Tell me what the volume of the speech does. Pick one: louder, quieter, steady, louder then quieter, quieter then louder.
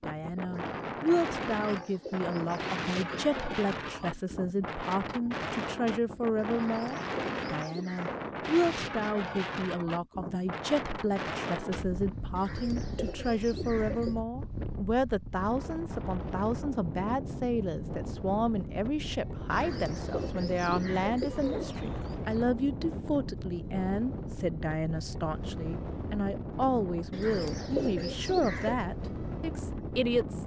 steady.